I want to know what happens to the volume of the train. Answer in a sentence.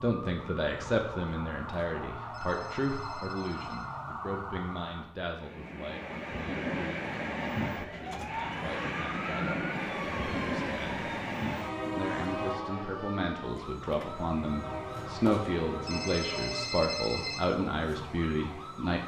The loudness of the train goes down.